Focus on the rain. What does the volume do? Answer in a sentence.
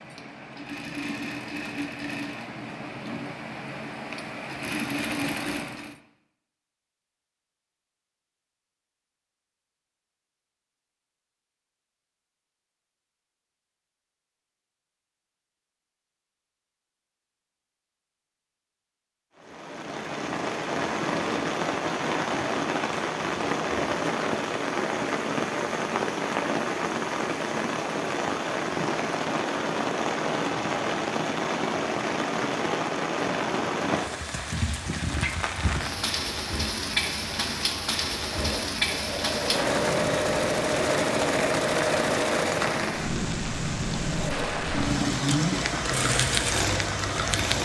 The volume of the rain stays about the same.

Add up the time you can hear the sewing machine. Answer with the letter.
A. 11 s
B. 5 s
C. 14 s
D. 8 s
C.